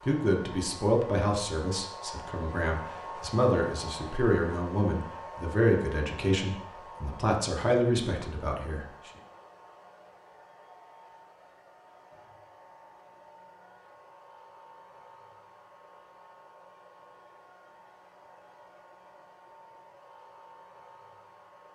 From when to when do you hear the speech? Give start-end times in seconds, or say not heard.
0.1-9.1.